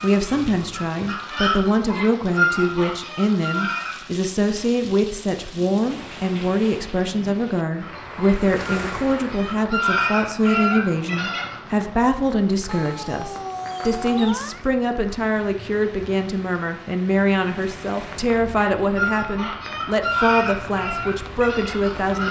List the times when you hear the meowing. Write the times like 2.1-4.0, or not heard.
5.5-7.5, 12.7-14.7.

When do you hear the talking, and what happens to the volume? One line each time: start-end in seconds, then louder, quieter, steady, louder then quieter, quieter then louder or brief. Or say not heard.
0.0-22.2 steady.